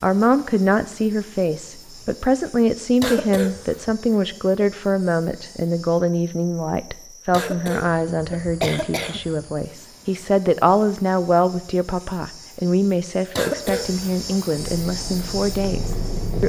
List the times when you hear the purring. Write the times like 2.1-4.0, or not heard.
14.8-16.4.